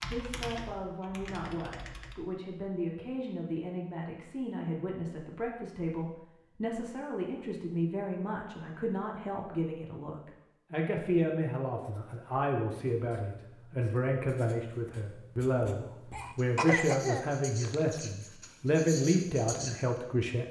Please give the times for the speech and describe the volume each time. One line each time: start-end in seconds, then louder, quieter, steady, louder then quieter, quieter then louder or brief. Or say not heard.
0.0-20.4 louder.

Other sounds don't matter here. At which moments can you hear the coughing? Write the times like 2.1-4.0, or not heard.
16.1-18.0.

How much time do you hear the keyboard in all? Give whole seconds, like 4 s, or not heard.
2 s.